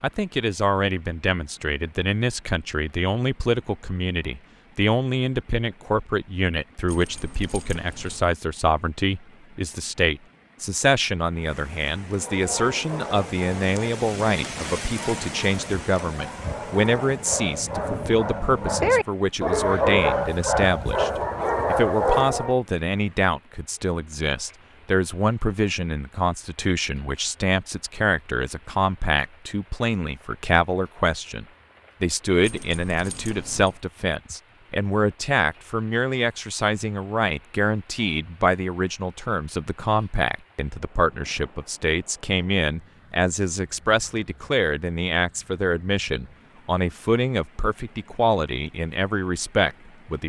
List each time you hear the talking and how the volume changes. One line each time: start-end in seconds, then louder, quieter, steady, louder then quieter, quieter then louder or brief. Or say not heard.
0.0-50.2 steady.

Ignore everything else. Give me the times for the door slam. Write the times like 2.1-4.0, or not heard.
not heard.